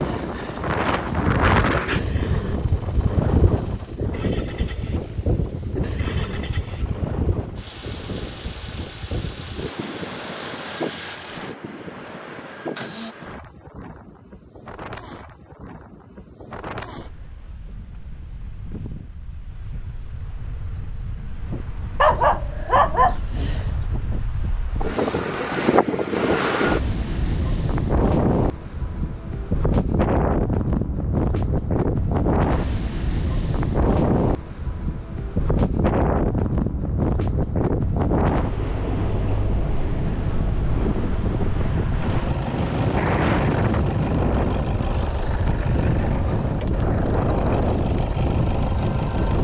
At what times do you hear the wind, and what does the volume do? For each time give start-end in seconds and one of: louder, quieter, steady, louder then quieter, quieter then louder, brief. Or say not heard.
0.0-49.3 quieter then louder.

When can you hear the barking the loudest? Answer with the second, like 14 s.
22 s.